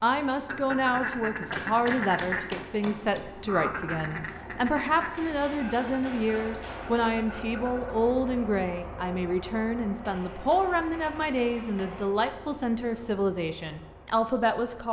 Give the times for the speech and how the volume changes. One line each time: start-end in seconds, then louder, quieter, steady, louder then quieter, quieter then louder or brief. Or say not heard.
0.0-14.8 steady.